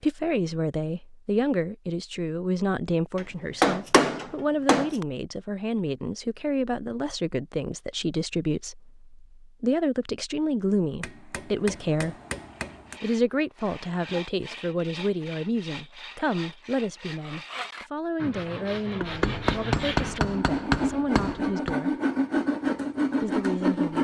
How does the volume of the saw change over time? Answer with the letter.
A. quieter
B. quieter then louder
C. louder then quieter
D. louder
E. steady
D.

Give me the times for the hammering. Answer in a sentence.
The hammering can be heard from 3.1 to 5.0 s, from 11.0 to 13.0 s and from 19.0 to 21.8 s.